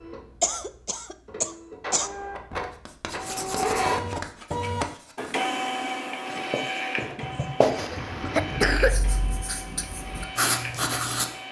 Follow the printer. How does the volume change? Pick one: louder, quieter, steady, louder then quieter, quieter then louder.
louder then quieter.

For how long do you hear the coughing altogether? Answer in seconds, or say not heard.
3 s.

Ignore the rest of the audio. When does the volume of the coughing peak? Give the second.
9 s.